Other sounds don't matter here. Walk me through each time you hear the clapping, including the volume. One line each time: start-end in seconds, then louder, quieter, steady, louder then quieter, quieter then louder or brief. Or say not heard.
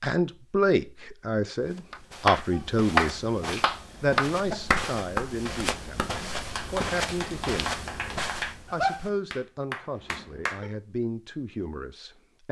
1.9-10.7 quieter then louder.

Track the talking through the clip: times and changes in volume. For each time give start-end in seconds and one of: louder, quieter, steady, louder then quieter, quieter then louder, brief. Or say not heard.
0.0-12.4 quieter.